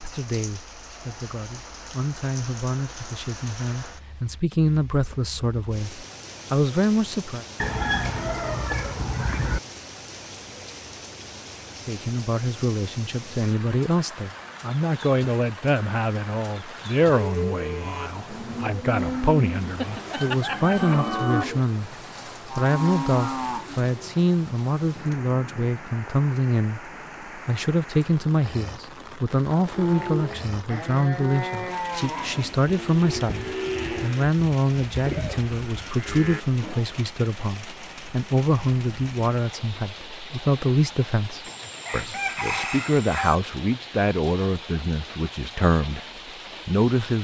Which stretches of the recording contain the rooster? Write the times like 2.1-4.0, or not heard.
7.5-9.6, 19.6-21.4, 41.4-43.4.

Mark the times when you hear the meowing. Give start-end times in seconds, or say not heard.
not heard.